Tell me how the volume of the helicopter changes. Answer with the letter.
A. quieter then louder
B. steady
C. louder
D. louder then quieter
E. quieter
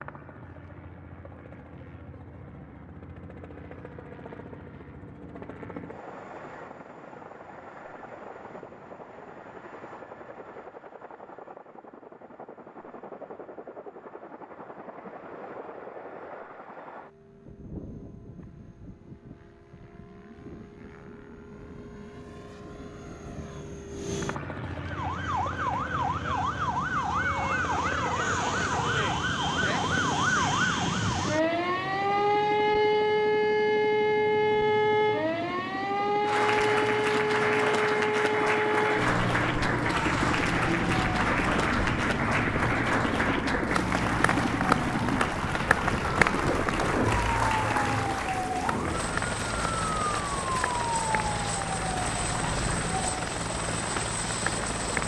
C.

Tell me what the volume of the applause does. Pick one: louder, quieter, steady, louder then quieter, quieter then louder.
quieter.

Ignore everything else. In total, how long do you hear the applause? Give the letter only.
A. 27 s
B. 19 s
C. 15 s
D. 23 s
B.